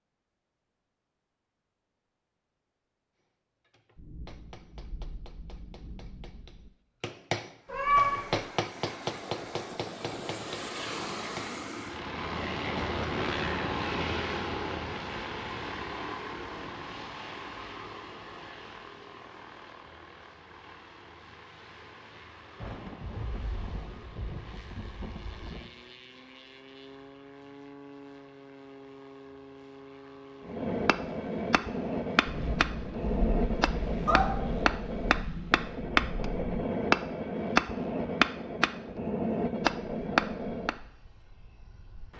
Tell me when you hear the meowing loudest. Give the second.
8 s.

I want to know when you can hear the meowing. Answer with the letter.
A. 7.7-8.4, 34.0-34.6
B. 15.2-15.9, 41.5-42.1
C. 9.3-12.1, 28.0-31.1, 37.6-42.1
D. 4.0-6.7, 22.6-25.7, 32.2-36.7
A.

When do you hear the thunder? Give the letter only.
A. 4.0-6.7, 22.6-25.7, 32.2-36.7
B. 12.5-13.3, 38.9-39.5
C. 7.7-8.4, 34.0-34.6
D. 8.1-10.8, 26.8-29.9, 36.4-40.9
A.